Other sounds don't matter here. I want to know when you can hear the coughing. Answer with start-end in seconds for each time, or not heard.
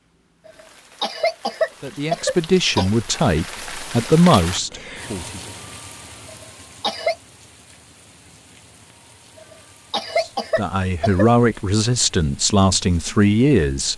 0.5-2.9, 6.2-7.2, 9.3-11.3.